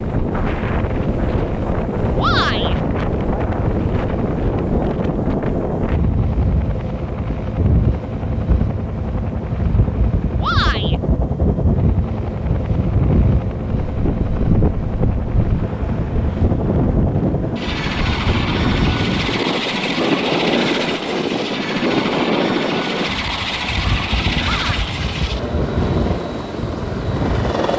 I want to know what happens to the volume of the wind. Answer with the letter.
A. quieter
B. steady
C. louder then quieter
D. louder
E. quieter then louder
B.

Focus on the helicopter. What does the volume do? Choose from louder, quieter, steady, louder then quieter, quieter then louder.
steady.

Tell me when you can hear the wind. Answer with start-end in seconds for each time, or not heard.
0.0-27.6.